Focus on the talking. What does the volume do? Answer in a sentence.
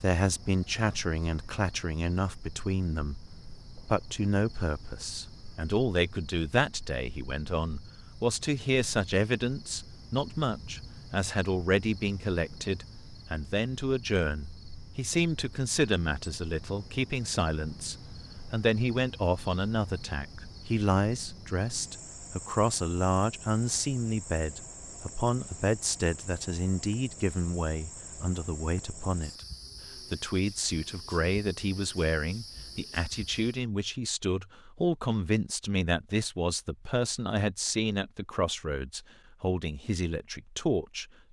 The loudness of the talking stays about the same.